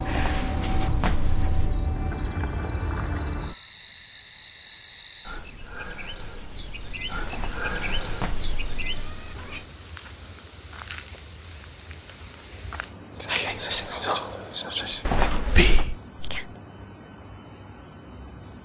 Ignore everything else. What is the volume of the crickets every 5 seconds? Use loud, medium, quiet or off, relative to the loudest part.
medium, loud, medium, medium.